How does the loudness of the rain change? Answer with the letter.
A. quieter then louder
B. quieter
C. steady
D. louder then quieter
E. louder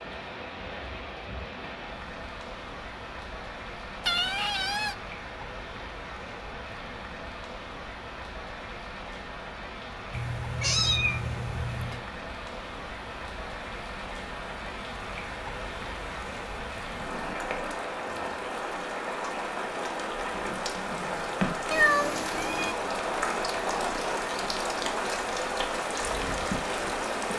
E.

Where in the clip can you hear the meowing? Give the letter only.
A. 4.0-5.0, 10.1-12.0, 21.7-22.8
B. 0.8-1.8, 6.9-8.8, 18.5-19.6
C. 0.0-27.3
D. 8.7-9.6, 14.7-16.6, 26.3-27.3
A.